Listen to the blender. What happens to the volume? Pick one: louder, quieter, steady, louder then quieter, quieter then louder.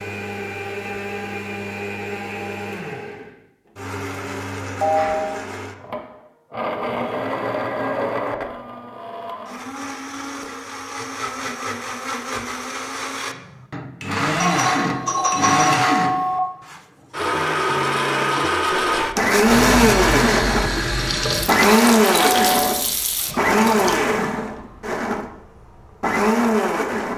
louder.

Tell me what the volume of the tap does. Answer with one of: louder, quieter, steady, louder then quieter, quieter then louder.
quieter.